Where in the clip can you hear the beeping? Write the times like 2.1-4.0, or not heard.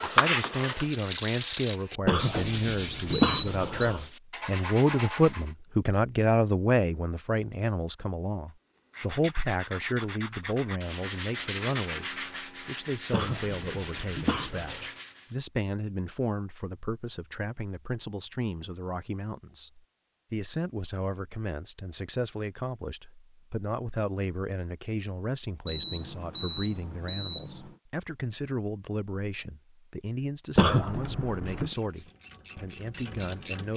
3.2-3.9, 25.6-27.8.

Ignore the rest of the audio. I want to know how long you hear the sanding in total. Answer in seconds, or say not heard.
12 s.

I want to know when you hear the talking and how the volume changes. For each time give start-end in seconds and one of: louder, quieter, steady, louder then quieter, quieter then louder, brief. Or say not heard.
0.0-33.7 quieter.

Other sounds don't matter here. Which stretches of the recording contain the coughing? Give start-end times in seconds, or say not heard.
2.0-4.0, 13.1-14.9, 30.6-31.7.